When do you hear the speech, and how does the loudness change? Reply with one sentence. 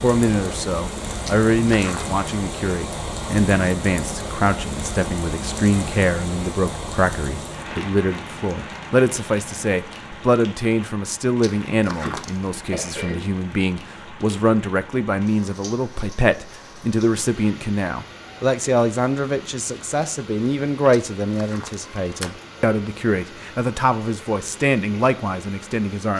You can hear the speech from 0.0 to 26.1 s, at a steady volume.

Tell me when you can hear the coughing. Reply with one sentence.
The coughing can be heard from 11.7 to 13.2 s.